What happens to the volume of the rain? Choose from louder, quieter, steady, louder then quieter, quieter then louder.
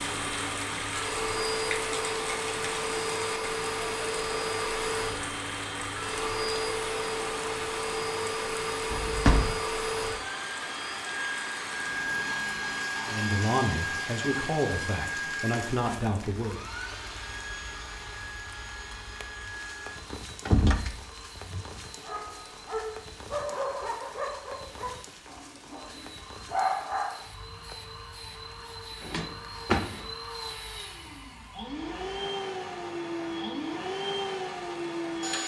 quieter.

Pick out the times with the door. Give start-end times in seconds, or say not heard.
8.9-9.6, 20.1-21.6, 29.0-30.1.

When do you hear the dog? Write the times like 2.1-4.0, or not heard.
22.0-27.2.